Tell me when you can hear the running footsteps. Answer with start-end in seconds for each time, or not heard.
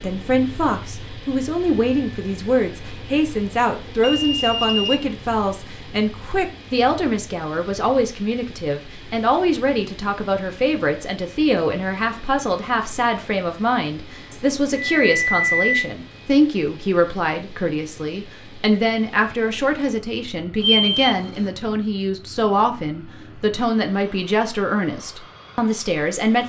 not heard.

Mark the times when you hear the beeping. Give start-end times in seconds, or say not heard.
4.0-5.0, 14.3-15.9, 20.6-21.4.